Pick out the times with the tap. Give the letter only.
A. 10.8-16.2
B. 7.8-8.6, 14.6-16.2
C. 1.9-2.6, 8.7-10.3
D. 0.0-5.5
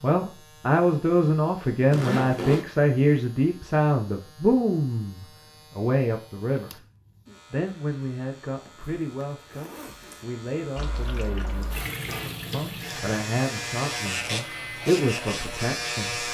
A.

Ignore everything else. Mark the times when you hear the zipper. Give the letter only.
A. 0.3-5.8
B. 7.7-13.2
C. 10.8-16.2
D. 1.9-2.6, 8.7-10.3
D.